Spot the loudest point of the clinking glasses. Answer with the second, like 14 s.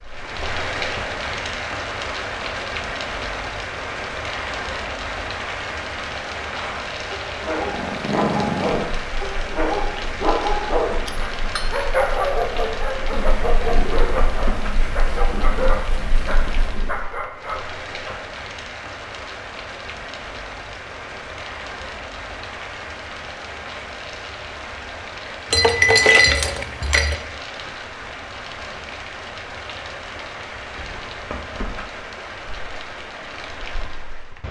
26 s.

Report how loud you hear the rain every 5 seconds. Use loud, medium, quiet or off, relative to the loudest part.
loud, loud, loud, medium, medium, medium, medium.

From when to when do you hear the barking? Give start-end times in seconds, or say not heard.
6.5-18.1.